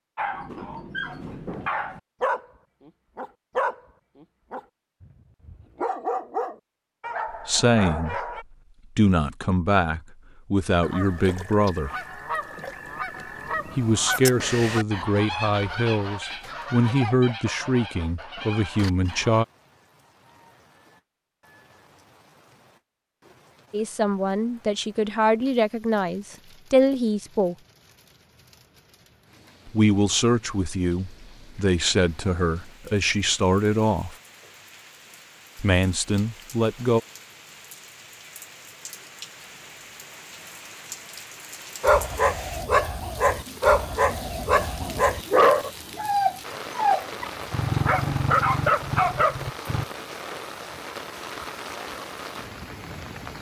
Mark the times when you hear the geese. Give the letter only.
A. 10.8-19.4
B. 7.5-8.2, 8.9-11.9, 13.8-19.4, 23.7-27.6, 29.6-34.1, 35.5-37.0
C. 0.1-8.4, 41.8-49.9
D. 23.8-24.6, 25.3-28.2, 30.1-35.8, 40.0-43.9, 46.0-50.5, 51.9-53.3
A.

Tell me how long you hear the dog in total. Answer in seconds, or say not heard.
16 s.